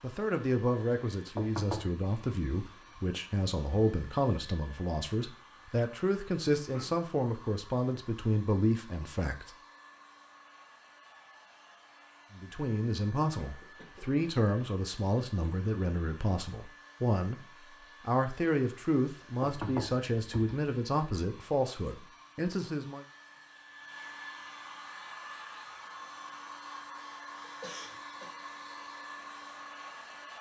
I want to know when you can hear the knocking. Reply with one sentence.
The knocking can be heard from 1.4 to 1.9 s and from 19.4 to 20.6 s.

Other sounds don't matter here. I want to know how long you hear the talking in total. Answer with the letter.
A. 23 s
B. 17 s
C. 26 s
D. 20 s
D.